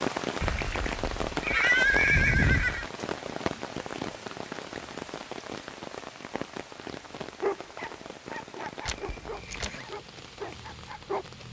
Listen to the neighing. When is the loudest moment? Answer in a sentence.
The loudest moment of the neighing is at 2 seconds.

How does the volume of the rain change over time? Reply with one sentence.
The loudness of the rain goes down.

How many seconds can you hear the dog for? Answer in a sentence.
You can hear the dog for 4 seconds altogether.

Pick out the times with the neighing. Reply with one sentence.
You can hear the neighing from 0.4 to 2.9 s and from 8.8 to 9.8 s.